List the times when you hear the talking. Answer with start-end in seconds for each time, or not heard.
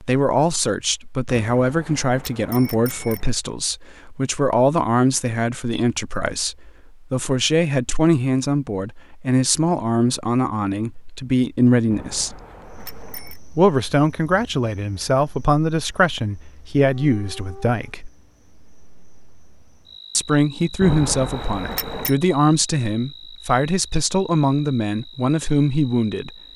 0.0-12.4, 13.6-18.1, 20.1-26.3.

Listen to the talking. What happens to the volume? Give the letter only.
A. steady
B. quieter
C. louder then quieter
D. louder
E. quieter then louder
A.